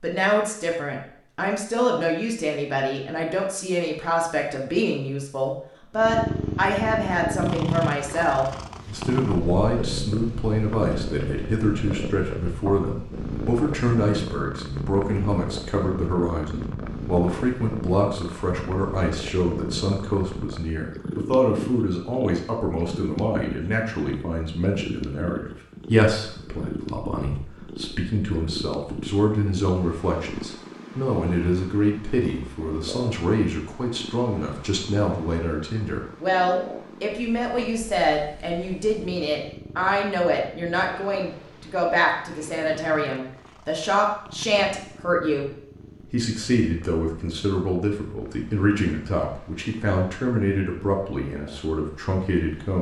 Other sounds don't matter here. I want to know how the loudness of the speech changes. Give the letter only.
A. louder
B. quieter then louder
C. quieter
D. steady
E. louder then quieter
D.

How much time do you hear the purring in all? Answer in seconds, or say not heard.
47 s.